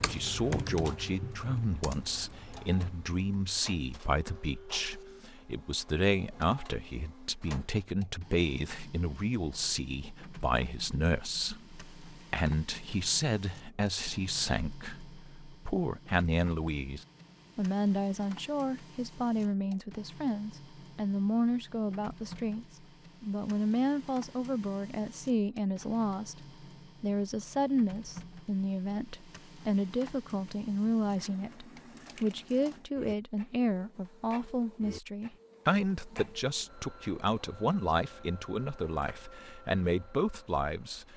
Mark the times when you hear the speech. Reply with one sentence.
You can hear the speech from 0.0 to 41.0 s.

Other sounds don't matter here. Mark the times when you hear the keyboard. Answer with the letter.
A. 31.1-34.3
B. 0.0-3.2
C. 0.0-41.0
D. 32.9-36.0
B.